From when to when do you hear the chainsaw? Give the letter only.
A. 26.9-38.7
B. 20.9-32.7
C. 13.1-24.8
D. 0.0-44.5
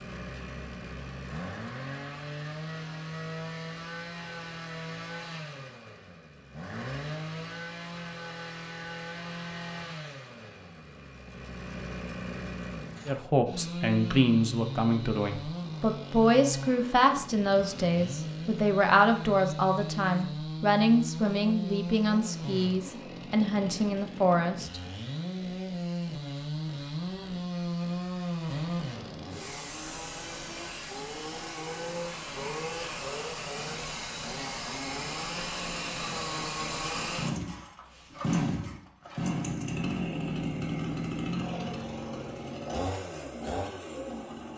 D.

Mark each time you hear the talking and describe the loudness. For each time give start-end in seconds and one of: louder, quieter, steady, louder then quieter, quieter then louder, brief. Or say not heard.
13.1-24.8 steady.